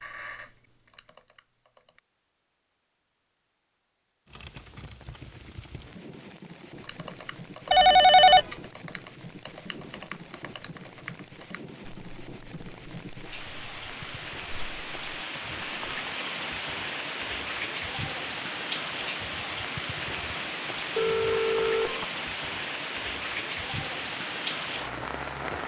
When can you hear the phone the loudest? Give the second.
8 s.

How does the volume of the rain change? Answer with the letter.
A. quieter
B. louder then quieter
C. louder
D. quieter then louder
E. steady
C.